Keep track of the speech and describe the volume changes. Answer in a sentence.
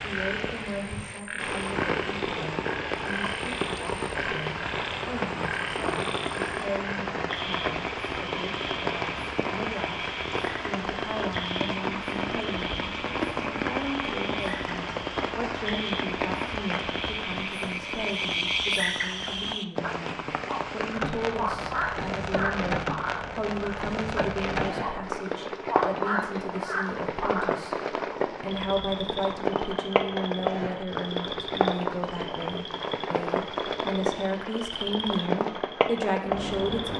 The loudness of the speech goes up.